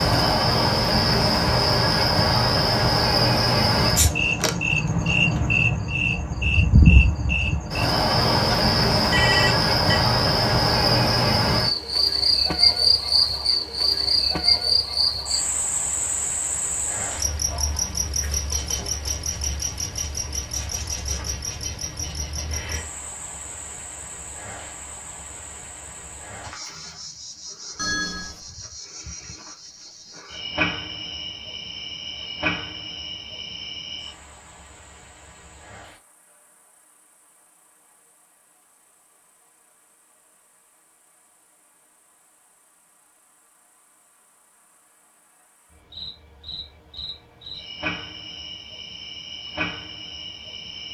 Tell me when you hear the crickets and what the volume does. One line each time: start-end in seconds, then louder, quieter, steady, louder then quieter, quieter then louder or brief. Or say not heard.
0.0-50.9 quieter.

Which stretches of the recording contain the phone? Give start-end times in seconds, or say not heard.
8.5-10.0, 27.8-28.4.